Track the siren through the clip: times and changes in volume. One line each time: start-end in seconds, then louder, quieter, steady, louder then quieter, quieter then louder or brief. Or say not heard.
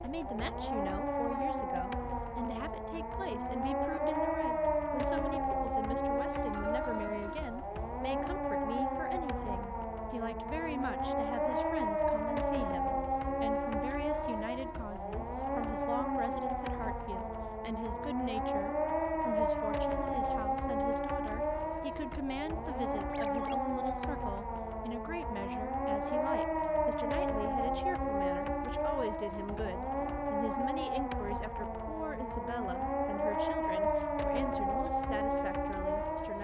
0.0-36.3 steady.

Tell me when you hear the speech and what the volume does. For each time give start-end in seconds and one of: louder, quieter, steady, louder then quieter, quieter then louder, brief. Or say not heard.
0.0-36.3 steady.